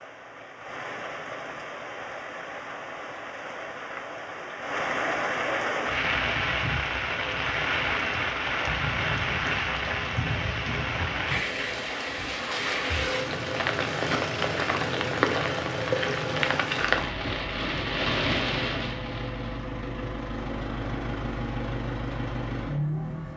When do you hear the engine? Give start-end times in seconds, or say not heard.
12.8-23.3.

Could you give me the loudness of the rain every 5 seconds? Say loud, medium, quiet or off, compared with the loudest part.
medium, loud, loud, loud, off.